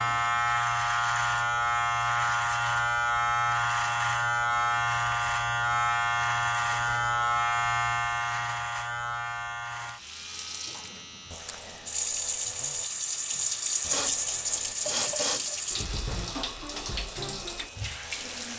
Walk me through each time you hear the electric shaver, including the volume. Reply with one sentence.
You can hear the electric shaver from 0.0 to 18.5 s, getting quieter.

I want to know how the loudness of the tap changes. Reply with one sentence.
The volume of the tap goes up, then down.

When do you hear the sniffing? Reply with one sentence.
The sniffing can be heard from 13.3 to 14.2 s and from 14.8 to 15.4 s.